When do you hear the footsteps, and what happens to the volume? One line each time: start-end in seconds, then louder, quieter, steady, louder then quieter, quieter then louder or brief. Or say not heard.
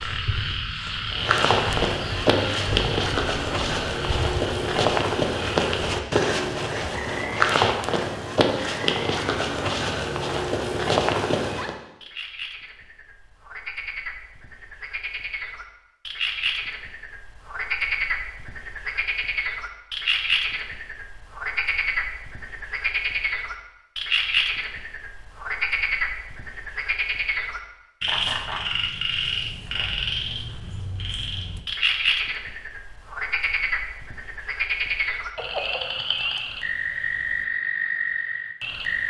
1.1-11.8 steady.